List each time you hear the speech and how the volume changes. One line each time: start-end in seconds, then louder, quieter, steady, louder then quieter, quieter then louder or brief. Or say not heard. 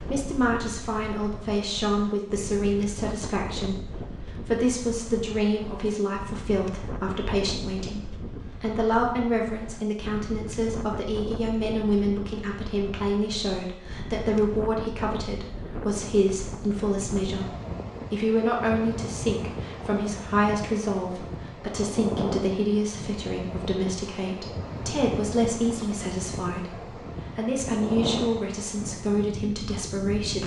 0.0-30.4 steady.